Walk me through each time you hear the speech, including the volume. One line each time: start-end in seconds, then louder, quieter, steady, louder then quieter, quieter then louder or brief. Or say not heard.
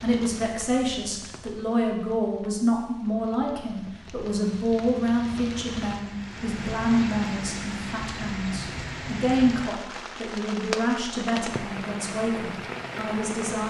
0.0-13.6 steady.